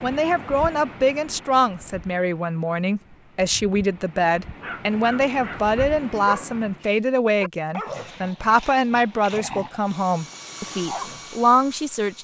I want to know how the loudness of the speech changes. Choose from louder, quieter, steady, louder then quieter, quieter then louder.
steady.